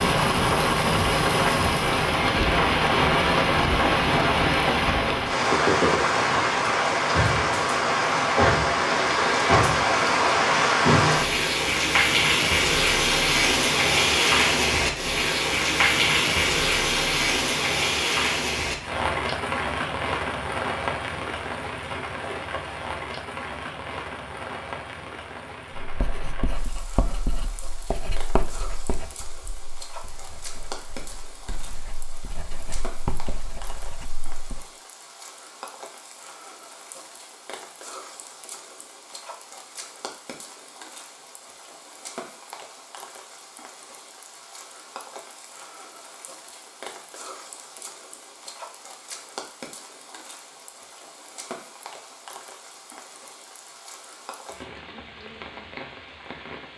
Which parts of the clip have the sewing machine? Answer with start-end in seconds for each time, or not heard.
not heard.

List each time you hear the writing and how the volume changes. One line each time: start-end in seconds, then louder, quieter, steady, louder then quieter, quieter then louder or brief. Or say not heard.
25.8-34.6 quieter then louder.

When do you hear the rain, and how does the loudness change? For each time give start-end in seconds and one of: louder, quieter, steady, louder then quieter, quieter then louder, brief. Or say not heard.
0.0-56.7 quieter.